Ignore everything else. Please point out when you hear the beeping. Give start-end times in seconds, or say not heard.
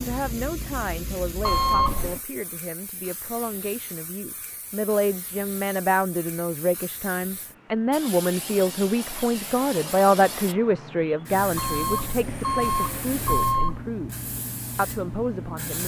1.4-2.2, 11.6-13.8.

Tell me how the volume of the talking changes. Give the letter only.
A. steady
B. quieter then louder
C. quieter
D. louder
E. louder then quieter
E.